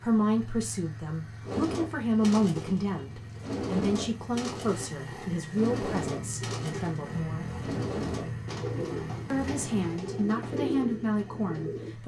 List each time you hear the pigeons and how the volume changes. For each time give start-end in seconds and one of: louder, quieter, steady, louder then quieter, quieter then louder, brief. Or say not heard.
1.4-11.9 steady.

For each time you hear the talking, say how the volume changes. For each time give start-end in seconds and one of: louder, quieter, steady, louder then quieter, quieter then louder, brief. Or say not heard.
0.0-7.5 louder then quieter
9.3-12.0 brief.